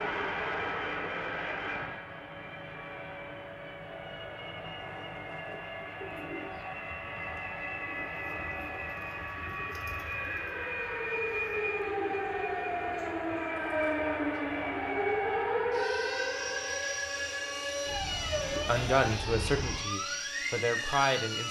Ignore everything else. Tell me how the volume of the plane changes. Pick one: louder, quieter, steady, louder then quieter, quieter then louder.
steady.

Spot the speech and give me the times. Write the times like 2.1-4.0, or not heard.
18.5-21.4.